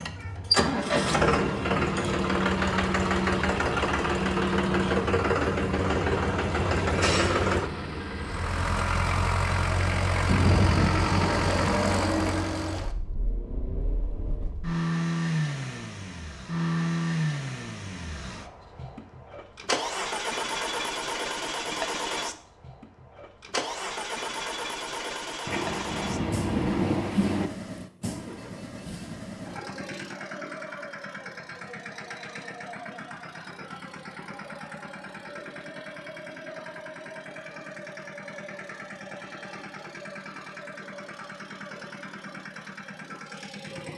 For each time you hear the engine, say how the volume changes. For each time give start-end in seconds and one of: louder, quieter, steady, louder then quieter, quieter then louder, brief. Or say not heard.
0.0-43.9 quieter.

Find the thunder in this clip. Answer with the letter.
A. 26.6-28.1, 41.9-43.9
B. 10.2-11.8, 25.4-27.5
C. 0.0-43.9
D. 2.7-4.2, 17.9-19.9
B.